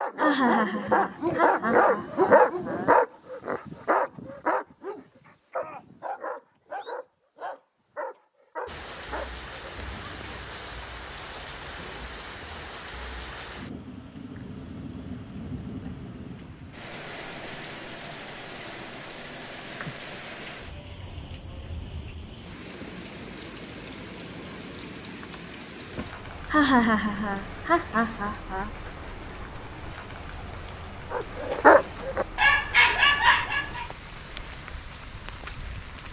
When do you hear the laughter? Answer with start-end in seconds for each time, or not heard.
0.1-2.9, 26.5-28.7.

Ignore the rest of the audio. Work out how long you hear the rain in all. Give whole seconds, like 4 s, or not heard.
27 s.